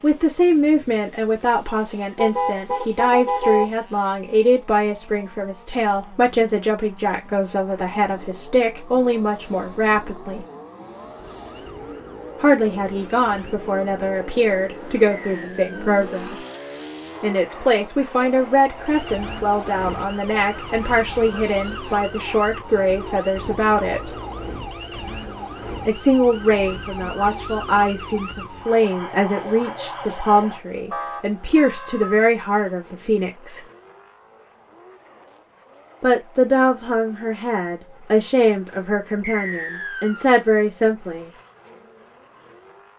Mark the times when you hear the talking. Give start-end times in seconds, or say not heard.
0.0-10.4, 12.4-16.4, 17.2-24.1, 25.9-33.6, 36.0-41.3.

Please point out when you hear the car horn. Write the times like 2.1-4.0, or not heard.
2.1-3.6.